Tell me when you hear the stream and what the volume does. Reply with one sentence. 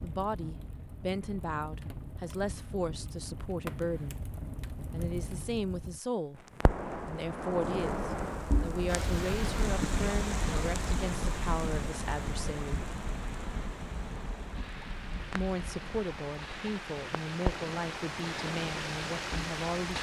The stream can be heard from 8.8 to 19.9 s, getting quieter then louder.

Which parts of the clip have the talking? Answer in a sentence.
You can hear the talking from 0.0 to 4.2 s, from 4.9 to 12.8 s and from 15.3 to 19.9 s.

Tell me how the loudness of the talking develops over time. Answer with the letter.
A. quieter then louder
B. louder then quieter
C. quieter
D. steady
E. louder
D.